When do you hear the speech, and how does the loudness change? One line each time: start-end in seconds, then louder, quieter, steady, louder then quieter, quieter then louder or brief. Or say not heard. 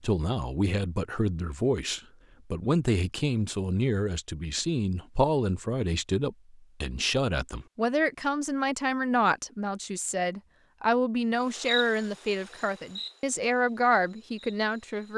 0.0-15.1 steady.